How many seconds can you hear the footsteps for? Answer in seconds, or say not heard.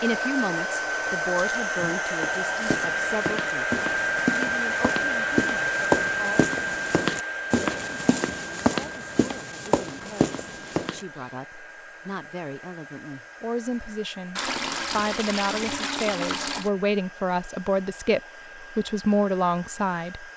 9 s.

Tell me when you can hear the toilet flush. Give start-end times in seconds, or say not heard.
14.3-16.7.